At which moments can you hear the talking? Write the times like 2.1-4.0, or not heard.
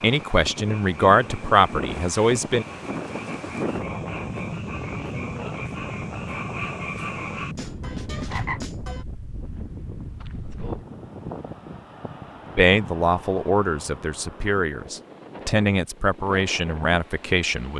0.0-2.6, 12.6-17.7.